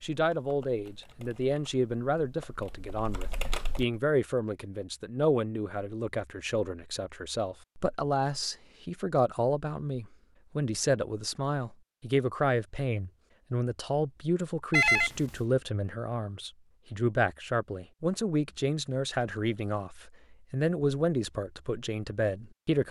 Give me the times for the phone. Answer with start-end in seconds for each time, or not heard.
14.7-15.3.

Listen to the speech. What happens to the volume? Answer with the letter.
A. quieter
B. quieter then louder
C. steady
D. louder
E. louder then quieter
C.